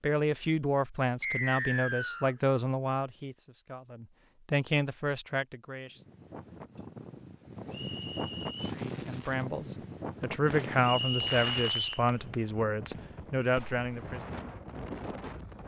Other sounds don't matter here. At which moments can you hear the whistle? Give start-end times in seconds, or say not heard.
1.2-2.4, 7.7-8.8, 10.8-12.1.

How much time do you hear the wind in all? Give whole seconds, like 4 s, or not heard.
10 s.